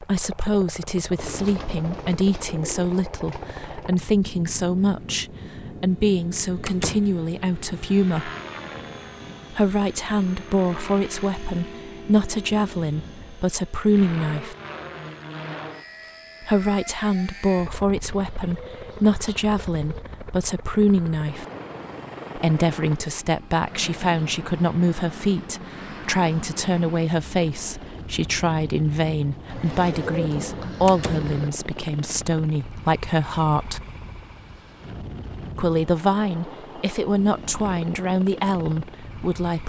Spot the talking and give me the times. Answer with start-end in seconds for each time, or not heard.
0.0-8.3, 9.5-14.6, 16.4-21.4, 22.4-33.8, 35.5-39.6.